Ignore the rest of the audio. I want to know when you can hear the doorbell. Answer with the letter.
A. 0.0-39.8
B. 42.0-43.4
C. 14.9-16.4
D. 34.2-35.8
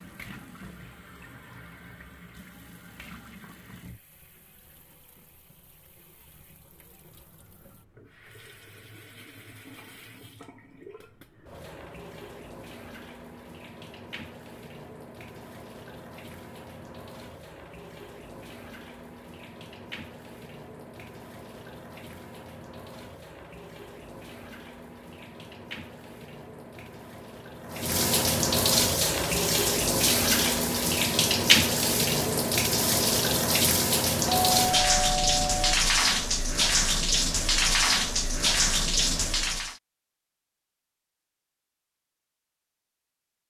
D.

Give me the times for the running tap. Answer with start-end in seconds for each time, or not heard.
0.0-39.8.